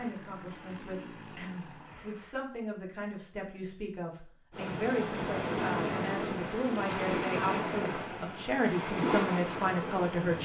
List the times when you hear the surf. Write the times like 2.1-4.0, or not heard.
4.5-10.4.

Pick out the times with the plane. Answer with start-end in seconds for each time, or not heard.
0.0-2.5.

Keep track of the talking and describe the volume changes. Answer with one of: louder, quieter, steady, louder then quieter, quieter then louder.
louder.